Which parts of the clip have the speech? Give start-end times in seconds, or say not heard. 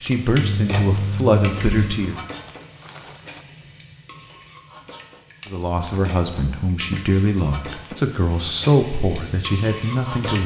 0.0-2.2, 5.5-10.4.